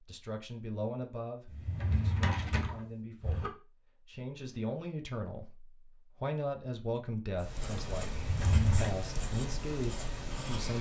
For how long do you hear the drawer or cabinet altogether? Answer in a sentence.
You can hear the drawer or cabinet for 3 seconds altogether.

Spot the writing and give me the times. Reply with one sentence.
You can hear the writing from 7.3 to 10.7 s.